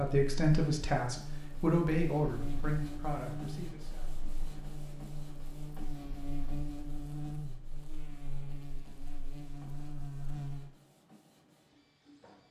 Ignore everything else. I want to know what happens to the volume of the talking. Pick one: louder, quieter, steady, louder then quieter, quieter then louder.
quieter.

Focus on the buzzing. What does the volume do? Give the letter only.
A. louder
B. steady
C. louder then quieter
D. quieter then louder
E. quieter
B.